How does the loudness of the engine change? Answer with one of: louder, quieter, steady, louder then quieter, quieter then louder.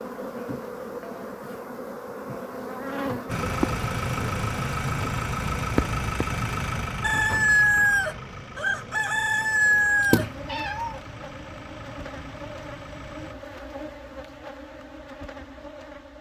quieter.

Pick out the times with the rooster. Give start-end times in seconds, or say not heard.
7.0-10.7.